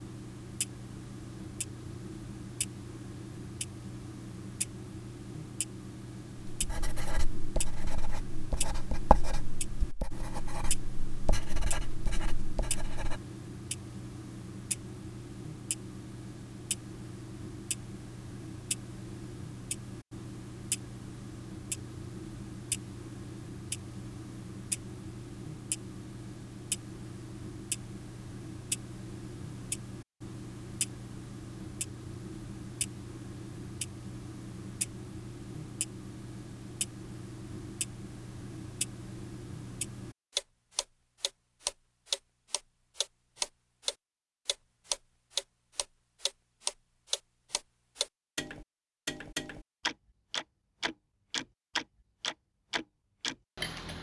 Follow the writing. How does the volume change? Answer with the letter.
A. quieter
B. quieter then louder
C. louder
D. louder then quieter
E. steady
D.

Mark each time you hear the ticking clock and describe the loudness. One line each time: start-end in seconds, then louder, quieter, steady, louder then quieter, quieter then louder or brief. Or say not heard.
0.0-53.9 louder.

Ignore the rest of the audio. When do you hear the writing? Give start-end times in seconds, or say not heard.
6.5-13.2.